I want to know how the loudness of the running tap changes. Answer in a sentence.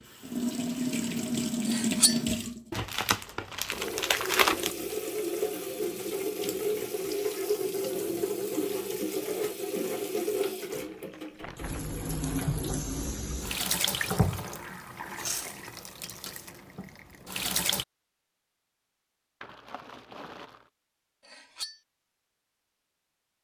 The loudness of the running tap goes down.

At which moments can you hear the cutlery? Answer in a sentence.
You can hear the cutlery from 1.6 to 2.2 s and from 21.2 to 21.8 s.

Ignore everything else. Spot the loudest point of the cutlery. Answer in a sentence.
The loudest moment of the cutlery is at 2 seconds.